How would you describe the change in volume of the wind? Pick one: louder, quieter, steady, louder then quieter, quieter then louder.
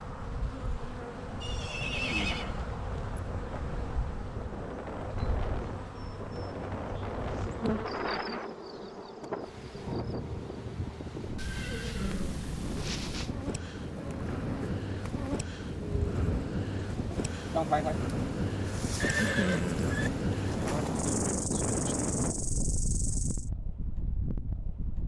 louder.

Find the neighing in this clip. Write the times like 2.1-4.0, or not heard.
1.4-2.5, 11.3-13.3, 19.0-20.1.